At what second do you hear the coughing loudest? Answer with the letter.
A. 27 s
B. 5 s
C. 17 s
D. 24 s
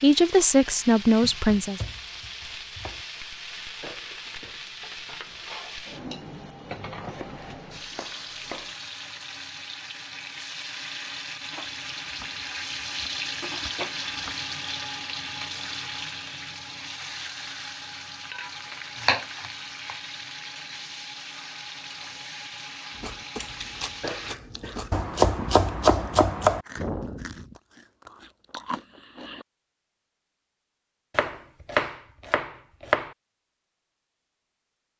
D.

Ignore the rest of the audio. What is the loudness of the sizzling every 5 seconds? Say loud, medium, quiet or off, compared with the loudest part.
medium, medium, loud, loud, medium, off, off.